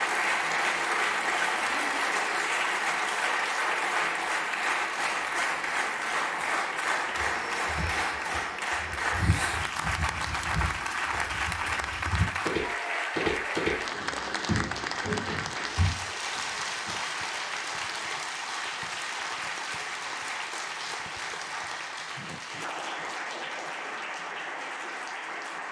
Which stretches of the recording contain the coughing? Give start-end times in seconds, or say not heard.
not heard.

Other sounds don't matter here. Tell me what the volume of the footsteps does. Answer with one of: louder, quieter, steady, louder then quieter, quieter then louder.
louder then quieter.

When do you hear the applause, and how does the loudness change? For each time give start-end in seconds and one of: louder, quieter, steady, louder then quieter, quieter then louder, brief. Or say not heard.
0.0-25.6 quieter.